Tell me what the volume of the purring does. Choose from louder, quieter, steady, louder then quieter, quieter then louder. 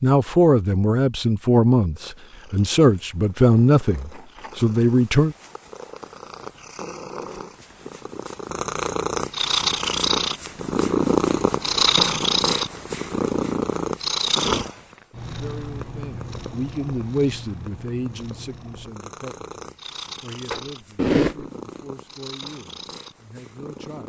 louder then quieter.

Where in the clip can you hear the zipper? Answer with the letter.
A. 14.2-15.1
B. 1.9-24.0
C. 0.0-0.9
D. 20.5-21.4
D.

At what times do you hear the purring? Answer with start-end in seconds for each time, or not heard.
1.9-24.0.